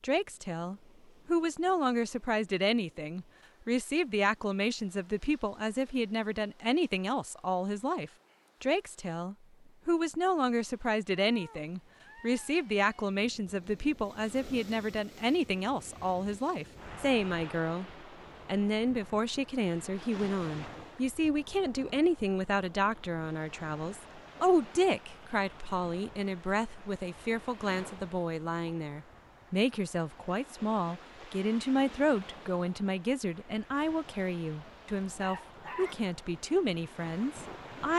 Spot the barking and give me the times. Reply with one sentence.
You can hear the barking from 34.6 to 36.0 s.